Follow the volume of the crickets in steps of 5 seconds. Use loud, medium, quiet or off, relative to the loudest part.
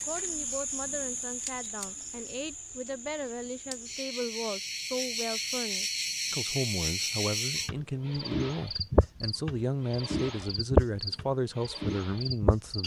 medium, loud, loud.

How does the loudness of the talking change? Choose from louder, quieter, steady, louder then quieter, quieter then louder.
louder.